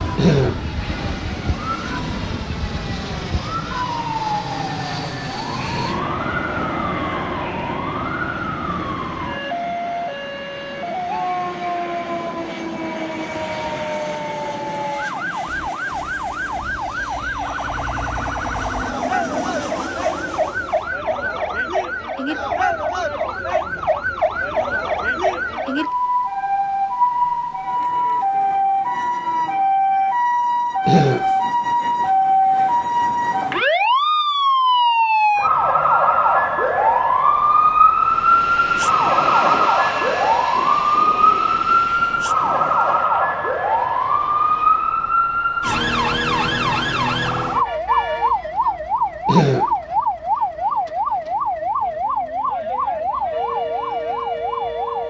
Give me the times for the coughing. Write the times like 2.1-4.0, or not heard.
0.1-0.6, 30.9-31.3, 49.2-49.8.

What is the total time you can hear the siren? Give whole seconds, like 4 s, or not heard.
55 s.